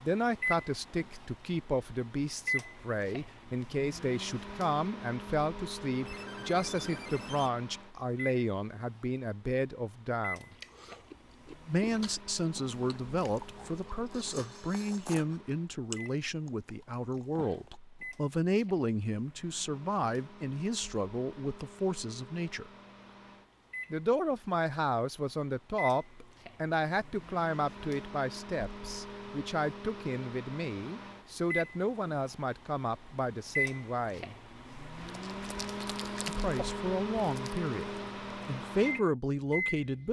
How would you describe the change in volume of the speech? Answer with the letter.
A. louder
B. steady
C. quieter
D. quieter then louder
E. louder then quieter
B.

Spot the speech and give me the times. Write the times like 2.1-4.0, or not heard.
0.0-10.6, 11.7-22.7, 23.9-34.4, 36.2-40.0.